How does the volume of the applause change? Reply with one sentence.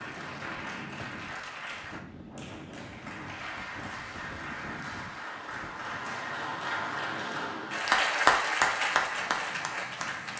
The loudness of the applause goes up.